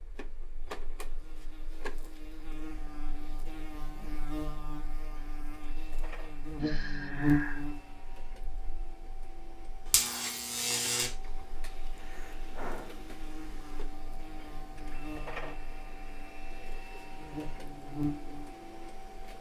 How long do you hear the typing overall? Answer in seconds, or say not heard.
not heard.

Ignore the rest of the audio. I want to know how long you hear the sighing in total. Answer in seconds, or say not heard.
2 s.